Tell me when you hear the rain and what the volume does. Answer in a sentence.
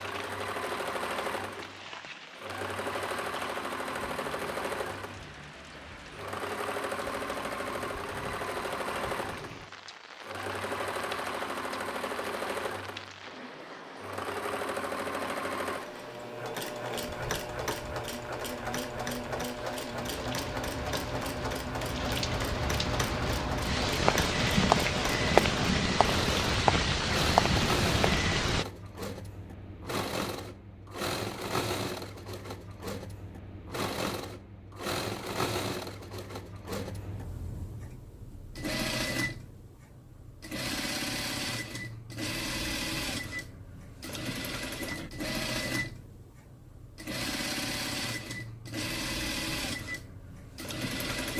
You can hear the rain from 0.0 to 28.6 s, getting louder.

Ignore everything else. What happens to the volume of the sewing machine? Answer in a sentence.
The volume of the sewing machine stays about the same.